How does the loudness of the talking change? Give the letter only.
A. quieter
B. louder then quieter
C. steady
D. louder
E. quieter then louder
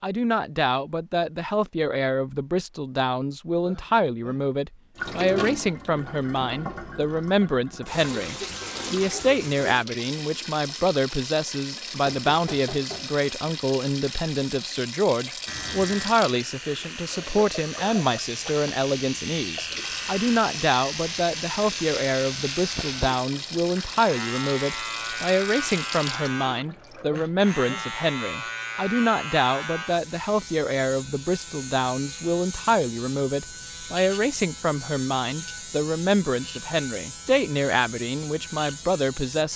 C.